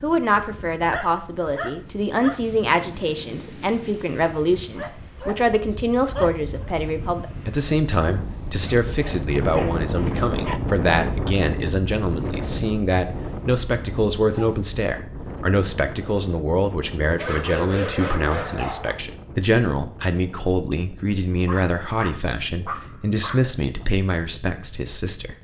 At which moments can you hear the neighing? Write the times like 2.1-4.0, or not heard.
not heard.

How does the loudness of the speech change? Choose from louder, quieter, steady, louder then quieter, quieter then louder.
steady.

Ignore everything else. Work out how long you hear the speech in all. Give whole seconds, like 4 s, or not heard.
25 s.